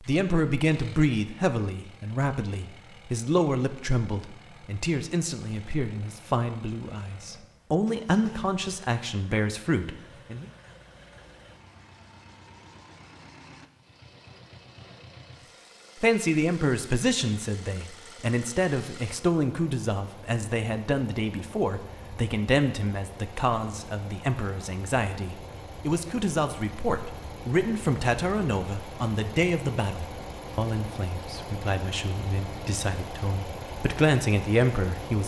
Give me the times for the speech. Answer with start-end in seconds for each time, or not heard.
0.0-10.4, 16.0-35.2.